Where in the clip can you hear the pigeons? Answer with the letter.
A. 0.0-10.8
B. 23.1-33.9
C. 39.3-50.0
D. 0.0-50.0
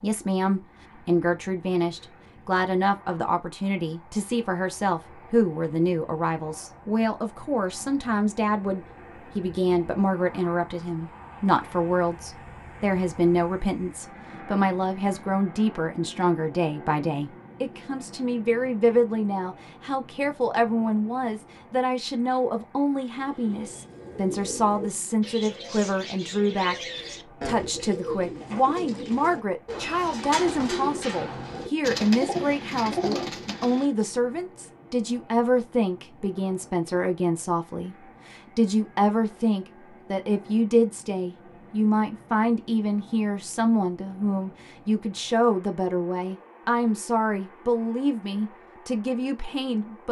B.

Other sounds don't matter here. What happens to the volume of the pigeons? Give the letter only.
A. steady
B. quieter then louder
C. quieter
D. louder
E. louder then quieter
D.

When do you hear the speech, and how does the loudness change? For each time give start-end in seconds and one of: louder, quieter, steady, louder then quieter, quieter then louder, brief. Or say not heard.
0.0-50.0 steady.